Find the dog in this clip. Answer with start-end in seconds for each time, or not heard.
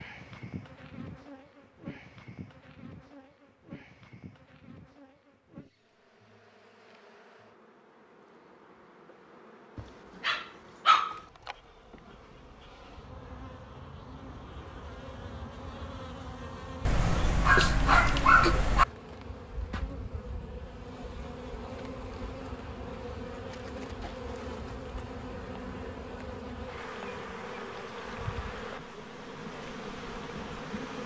9.8-11.2, 16.9-18.9.